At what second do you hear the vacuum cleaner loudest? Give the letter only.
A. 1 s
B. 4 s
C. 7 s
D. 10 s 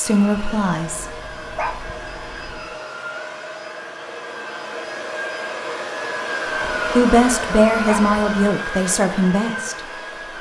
C.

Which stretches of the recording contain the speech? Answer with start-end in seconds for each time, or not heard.
0.0-1.1, 7.0-9.8.